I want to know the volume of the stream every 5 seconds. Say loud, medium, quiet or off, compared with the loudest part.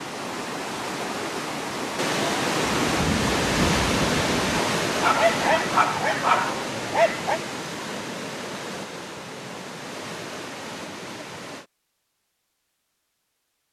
loud, medium, medium.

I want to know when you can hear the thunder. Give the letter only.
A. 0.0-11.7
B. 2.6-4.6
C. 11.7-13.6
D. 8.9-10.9
B.